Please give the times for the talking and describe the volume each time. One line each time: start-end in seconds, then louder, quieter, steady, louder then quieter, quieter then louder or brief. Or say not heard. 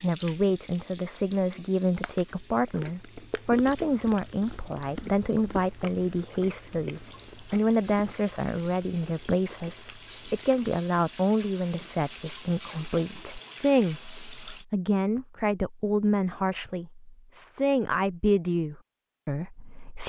0.0-20.0 steady.